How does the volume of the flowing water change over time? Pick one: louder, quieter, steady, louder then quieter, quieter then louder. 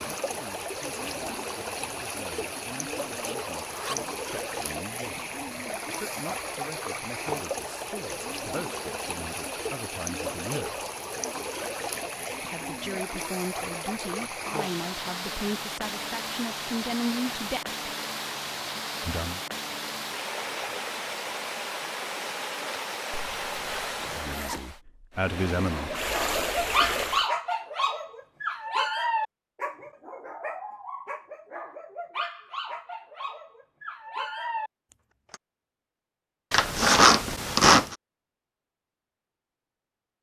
steady.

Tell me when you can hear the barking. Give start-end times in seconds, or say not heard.
25.9-35.4.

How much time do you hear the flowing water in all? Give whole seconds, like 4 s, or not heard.
27 s.